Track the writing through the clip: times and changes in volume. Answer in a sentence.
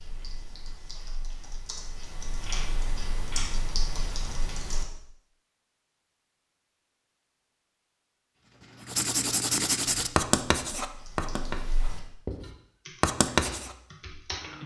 The writing can be heard from 8.3 to 13.8 s, getting quieter then louder.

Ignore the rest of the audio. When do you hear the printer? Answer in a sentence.
The printer can't be heard in this clip.